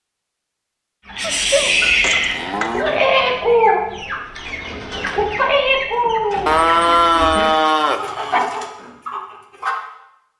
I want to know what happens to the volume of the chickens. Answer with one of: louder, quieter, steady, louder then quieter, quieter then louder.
quieter.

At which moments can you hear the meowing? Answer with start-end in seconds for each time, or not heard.
not heard.